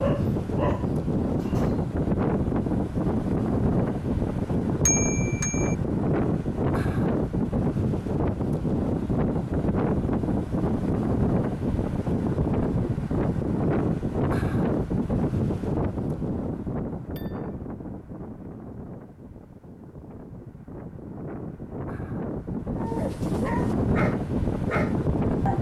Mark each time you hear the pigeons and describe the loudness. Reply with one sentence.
The pigeons can't be heard in this clip.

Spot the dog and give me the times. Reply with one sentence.
You can hear the dog from 0.0 to 1.9 s and from 22.8 to 25.5 s.